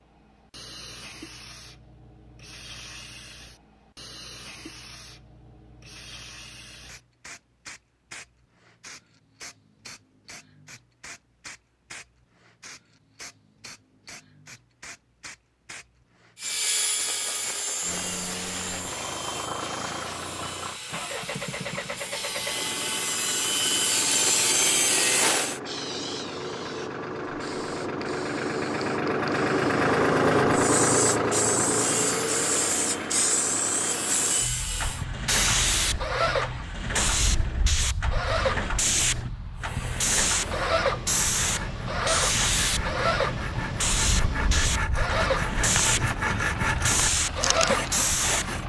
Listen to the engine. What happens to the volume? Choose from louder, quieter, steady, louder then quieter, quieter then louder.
louder then quieter.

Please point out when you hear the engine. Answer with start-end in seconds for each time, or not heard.
17.8-48.6.